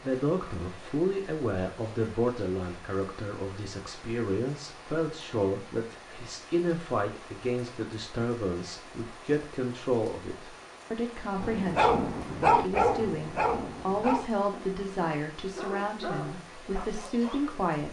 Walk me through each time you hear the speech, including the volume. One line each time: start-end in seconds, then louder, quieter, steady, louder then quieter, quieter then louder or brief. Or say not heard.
0.0-17.8 steady.